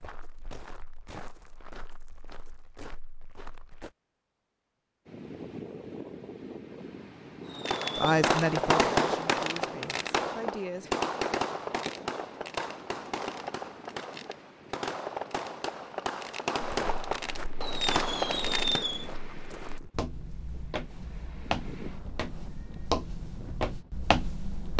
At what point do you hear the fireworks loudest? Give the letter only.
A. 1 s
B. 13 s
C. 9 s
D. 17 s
C.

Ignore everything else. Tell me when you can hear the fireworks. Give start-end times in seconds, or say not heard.
7.5-19.1.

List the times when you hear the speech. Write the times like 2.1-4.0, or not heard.
8.0-10.9.